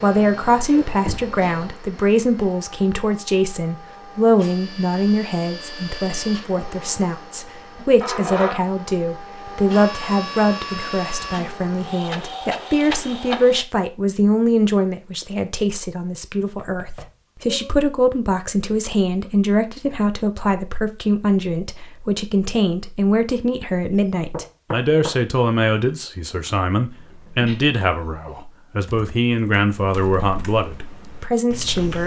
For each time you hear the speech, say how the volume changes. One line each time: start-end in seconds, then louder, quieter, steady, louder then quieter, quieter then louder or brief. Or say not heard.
0.0-32.0 steady.